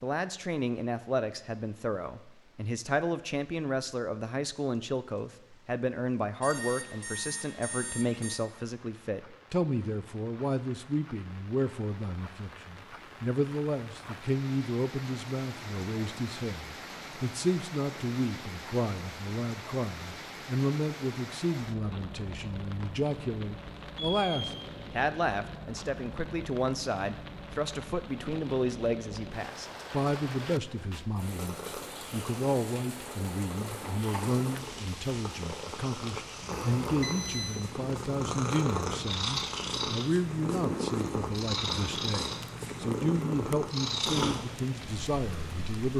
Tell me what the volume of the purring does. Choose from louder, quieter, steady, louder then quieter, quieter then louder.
louder.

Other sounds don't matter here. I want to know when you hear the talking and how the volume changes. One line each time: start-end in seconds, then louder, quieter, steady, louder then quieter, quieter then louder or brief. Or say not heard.
0.0-45.9 steady.